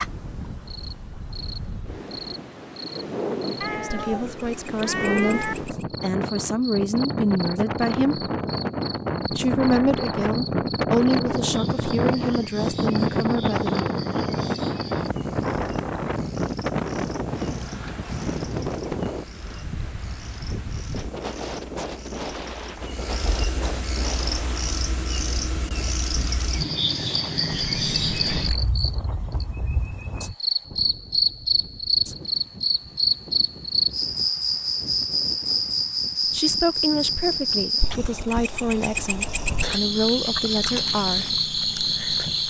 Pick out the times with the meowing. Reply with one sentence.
The meowing can be heard from 3.6 to 5.5 s and from 27.6 to 28.8 s.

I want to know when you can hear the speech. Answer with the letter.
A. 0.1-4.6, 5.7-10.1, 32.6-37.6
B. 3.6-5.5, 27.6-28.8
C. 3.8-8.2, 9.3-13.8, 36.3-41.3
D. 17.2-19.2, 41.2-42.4
C.